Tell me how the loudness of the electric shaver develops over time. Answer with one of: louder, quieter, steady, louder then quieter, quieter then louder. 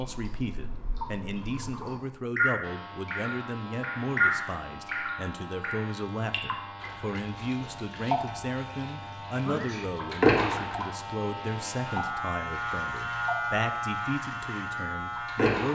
louder.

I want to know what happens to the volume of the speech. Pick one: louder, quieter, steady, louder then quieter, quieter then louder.
steady.